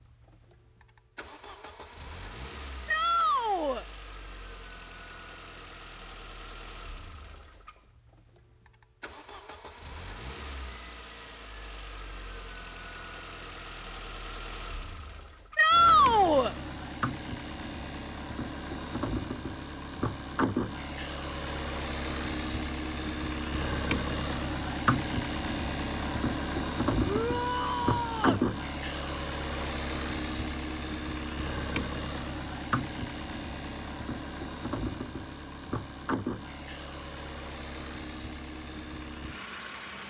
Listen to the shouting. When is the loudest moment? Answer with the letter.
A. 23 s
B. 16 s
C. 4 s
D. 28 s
B.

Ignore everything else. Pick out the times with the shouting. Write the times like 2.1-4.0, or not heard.
2.9-3.9, 15.6-16.6, 27.1-28.4.